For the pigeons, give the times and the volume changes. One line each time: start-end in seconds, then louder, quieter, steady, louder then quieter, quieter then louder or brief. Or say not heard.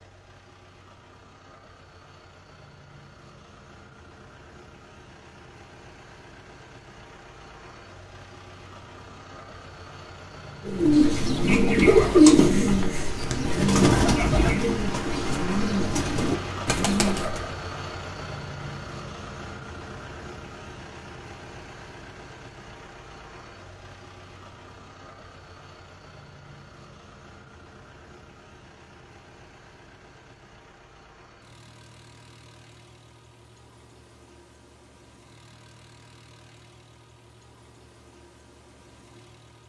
10.7-17.5 quieter.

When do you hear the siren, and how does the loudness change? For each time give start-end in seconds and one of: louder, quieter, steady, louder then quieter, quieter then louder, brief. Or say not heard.
not heard.